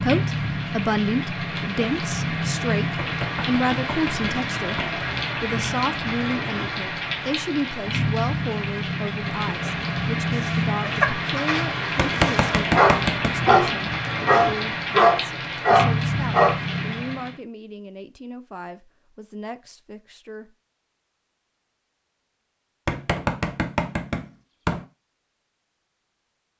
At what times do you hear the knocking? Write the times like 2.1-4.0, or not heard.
3.0-4.9, 11.9-13.4, 22.9-24.9.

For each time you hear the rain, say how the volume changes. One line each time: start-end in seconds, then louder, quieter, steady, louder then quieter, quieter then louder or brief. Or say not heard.
0.0-17.4 steady.